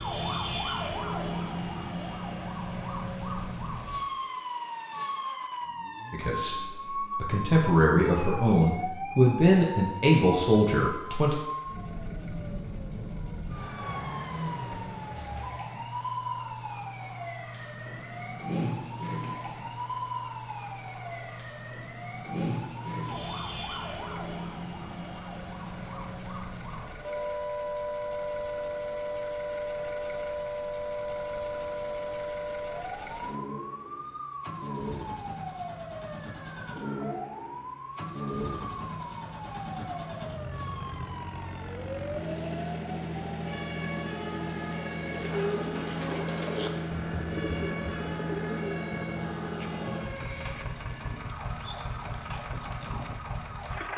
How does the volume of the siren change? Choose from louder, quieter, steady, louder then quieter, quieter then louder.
quieter.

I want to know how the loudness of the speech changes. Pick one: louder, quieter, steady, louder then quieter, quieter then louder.
louder.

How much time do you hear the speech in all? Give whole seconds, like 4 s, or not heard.
5 s.